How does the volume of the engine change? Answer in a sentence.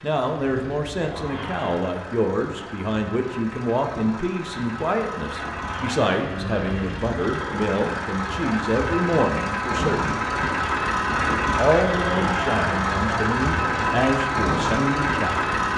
The loudness of the engine goes up.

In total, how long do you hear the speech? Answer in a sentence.
You can hear the speech for 14 seconds altogether.